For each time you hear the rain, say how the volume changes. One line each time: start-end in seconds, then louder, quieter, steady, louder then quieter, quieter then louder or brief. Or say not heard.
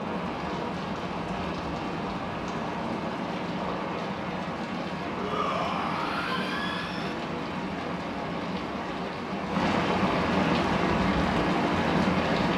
0.0-12.5 louder.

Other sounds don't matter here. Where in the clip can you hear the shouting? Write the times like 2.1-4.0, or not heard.
5.2-7.2.